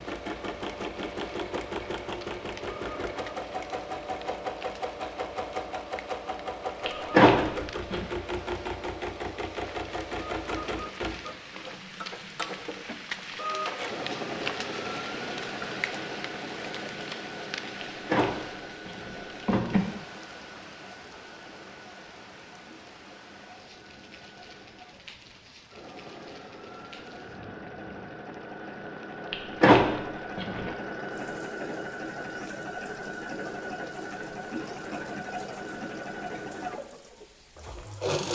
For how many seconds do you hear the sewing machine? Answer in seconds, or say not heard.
38 s.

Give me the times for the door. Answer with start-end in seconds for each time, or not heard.
6.8-8.1, 17.8-19.8, 29.3-30.7.